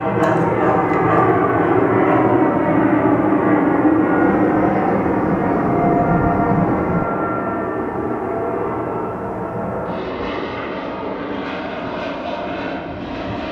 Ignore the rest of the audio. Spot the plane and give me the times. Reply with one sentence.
The plane can be heard from 0.0 to 13.4 s.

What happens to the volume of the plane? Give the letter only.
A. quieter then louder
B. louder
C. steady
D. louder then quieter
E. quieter
E.